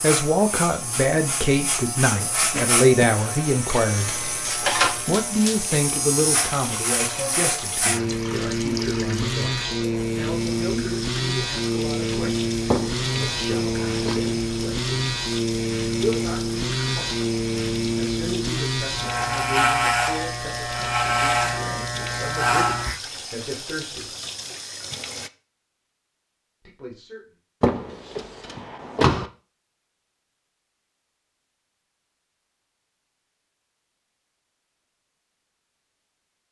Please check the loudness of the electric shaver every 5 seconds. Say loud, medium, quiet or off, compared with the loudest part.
loud, loud, loud, loud, loud, off, off, off.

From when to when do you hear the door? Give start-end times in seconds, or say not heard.
12.7-14.2, 27.6-29.2.